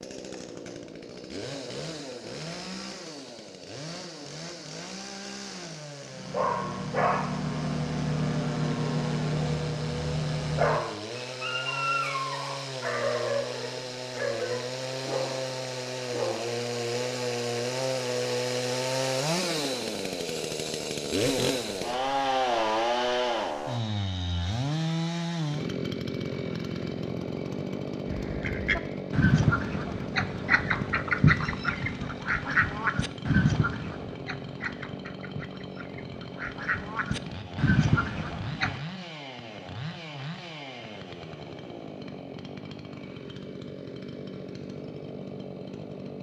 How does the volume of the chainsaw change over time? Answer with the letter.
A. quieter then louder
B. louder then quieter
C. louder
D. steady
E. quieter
B.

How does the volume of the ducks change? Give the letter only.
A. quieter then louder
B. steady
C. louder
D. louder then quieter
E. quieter
A.